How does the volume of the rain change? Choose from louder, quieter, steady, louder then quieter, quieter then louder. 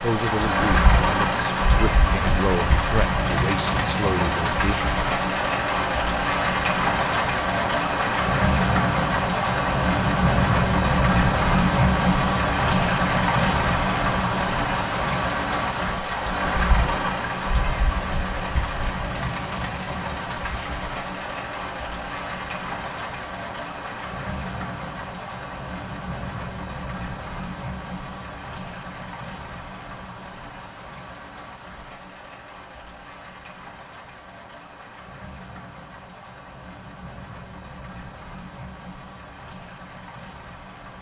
quieter.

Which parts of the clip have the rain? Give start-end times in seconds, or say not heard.
0.0-40.9.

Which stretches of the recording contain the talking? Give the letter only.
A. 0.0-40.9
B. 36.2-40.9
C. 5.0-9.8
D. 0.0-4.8
D.